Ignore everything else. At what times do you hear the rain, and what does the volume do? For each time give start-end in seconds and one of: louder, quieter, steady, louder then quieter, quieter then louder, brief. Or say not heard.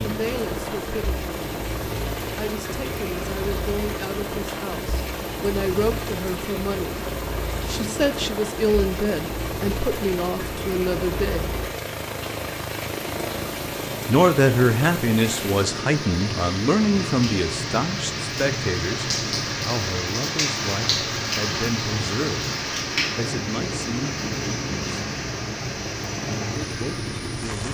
0.0-27.6 louder.